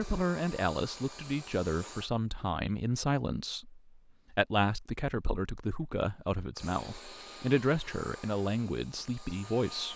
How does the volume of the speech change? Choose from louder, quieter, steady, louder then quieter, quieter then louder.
steady.